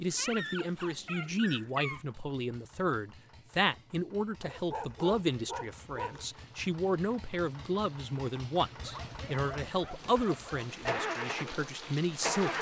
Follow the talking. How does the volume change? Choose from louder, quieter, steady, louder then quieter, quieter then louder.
steady.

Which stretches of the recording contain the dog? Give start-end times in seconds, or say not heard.
0.1-2.0, 4.4-6.3, 8.8-10.7.